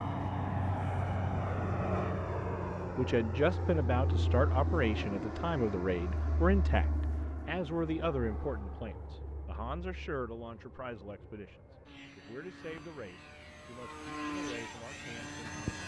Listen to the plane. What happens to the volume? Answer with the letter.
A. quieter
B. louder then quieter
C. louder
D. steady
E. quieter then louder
E.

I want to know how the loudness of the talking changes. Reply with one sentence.
The loudness of the talking goes down.